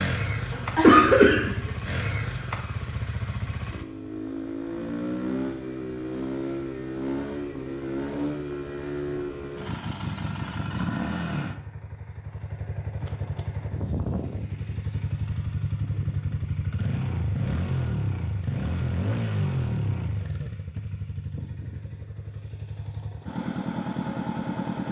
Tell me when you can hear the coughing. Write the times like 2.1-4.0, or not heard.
0.8-1.6.